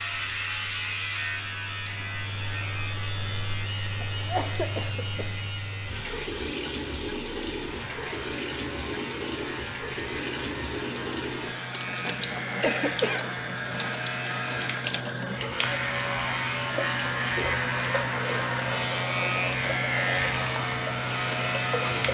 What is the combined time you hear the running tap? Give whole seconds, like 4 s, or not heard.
22 s.